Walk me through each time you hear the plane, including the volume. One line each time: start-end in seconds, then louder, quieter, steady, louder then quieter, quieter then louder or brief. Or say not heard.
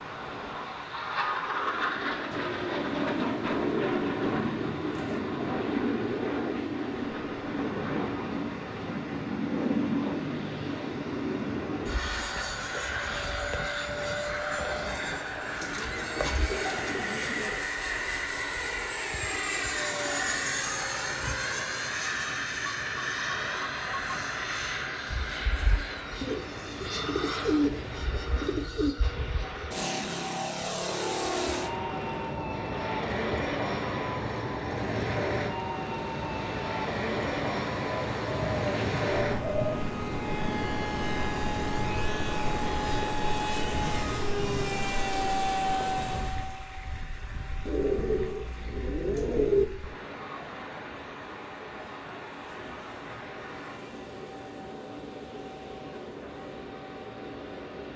0.0-57.9 quieter.